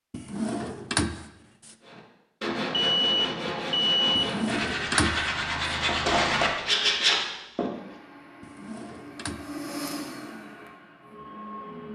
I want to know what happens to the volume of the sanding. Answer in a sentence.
The loudness of the sanding goes up.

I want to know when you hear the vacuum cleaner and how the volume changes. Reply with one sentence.
You can hear the vacuum cleaner from 7.7 to 11.9 s, getting louder then quieter.